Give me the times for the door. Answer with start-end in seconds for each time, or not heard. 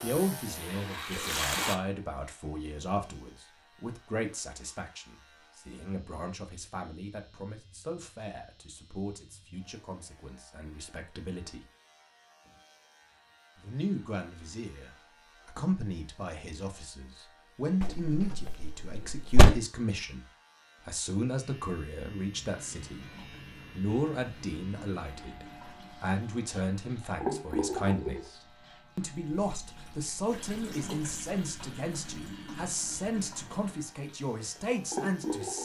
17.8-19.6.